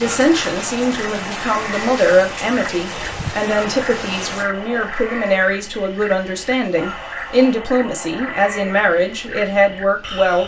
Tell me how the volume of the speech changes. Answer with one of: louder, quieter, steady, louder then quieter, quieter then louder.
steady.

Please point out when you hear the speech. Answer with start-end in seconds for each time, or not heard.
0.0-10.4.